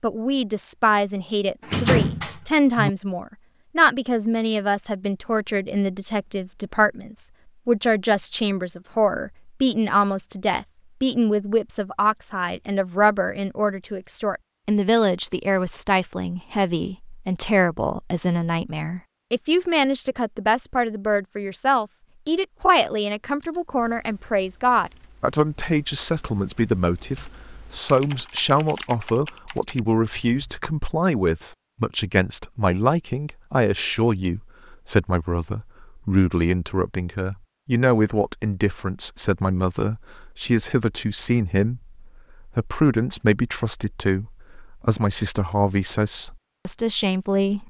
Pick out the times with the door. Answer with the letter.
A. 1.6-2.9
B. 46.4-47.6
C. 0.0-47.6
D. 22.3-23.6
A.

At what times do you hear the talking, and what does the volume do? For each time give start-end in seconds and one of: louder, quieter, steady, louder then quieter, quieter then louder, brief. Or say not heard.
0.0-47.6 steady.